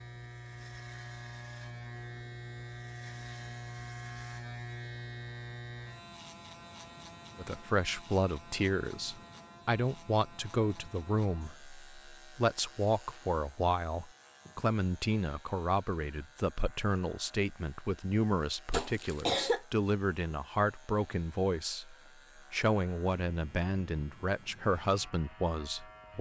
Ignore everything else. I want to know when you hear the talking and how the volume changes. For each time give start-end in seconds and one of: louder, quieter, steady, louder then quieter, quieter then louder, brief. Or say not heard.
7.3-26.1 steady.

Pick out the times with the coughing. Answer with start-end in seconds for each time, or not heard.
18.7-19.6.